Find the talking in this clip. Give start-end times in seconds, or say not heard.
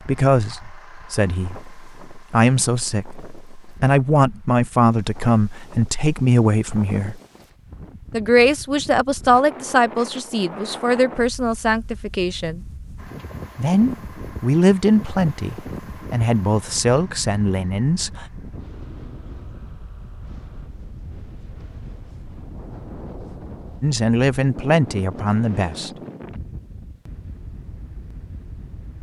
0.0-7.2, 8.1-12.6, 13.6-18.2, 23.8-25.9.